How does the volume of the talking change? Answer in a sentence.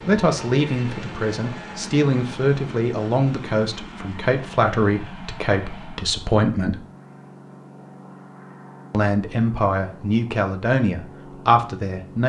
The volume of the talking stays about the same.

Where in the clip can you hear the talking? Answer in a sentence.
The talking can be heard from 0.1 to 6.8 s and from 8.9 to 12.2 s.